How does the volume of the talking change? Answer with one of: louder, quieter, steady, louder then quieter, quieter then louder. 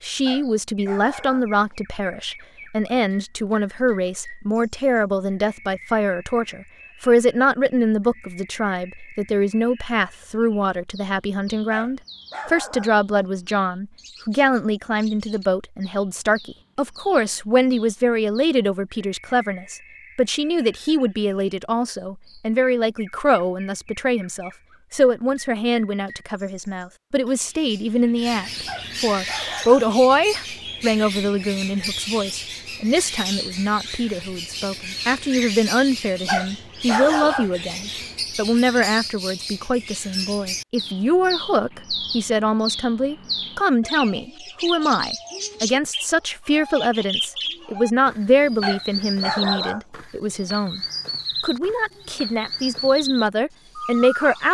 steady.